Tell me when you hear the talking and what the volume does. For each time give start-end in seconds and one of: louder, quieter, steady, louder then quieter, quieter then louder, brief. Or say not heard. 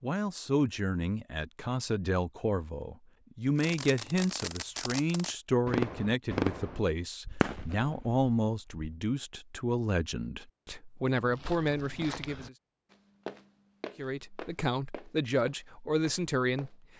0.0-12.6 steady
13.9-16.8 brief.